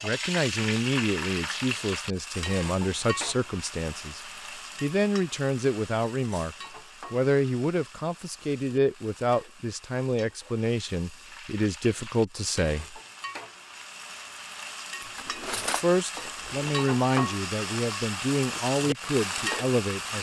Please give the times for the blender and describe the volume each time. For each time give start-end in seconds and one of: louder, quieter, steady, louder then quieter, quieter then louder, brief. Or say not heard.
not heard.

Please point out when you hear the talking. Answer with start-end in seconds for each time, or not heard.
0.0-4.2, 4.8-13.0, 15.8-20.1.